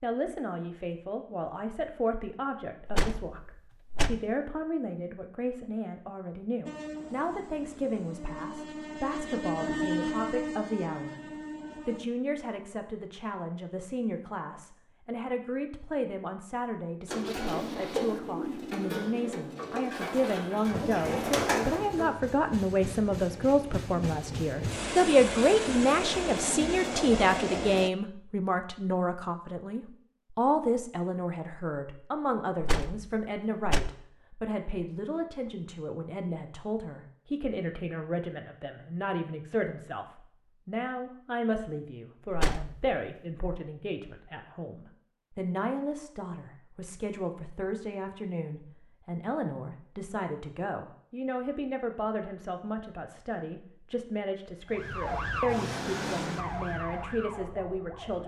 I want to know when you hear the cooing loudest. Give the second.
21 s.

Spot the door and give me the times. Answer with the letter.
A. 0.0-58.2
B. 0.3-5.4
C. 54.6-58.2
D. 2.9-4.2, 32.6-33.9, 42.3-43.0
D.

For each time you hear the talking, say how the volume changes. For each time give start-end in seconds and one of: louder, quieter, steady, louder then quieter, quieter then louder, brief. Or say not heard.
0.0-58.2 louder then quieter.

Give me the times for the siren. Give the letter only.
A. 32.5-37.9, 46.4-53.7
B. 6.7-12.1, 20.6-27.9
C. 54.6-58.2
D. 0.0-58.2
C.